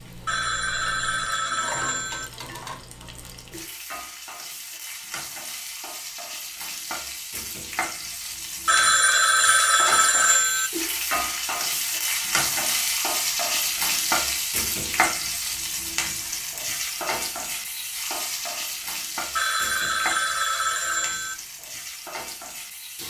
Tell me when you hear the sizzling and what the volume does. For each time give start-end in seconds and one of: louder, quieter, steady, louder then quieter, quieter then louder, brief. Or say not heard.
0.0-23.0 louder then quieter.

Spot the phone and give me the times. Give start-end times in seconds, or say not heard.
0.2-2.3, 8.7-10.7, 19.4-21.4.